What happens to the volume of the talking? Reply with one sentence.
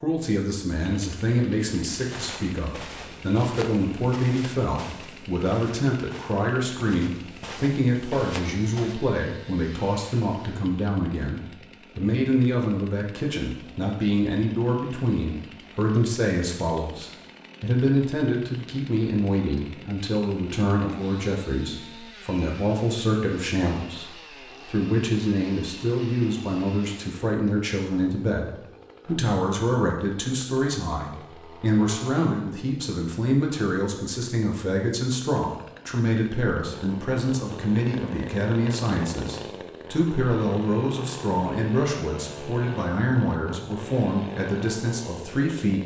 The volume of the talking stays about the same.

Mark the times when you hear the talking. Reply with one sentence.
The talking can be heard from 0.0 to 45.8 s.